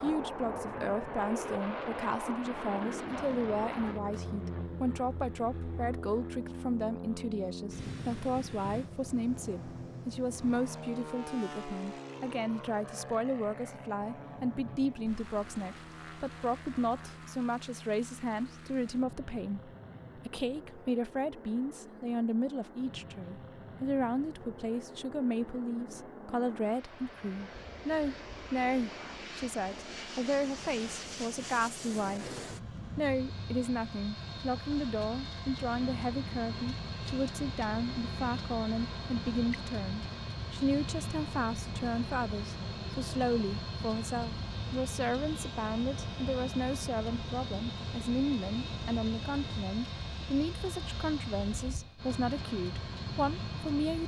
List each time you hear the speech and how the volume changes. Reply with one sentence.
The speech can be heard from 0.0 to 54.0 s, at a steady volume.